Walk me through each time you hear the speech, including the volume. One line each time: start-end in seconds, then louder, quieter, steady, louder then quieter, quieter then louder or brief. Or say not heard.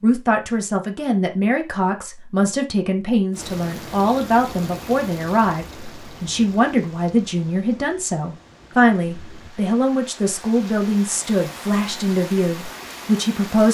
0.0-13.6 steady.